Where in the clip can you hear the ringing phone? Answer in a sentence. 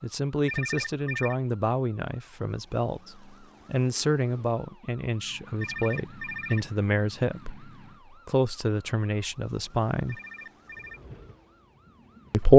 The ringing phone can be heard from 0.5 to 1.4 s, from 5.6 to 6.7 s and from 10.1 to 11.0 s.